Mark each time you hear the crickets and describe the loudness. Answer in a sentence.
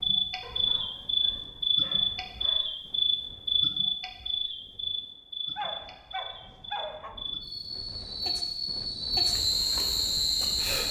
The crickets can be heard from 0.0 to 10.8 s, getting quieter then louder.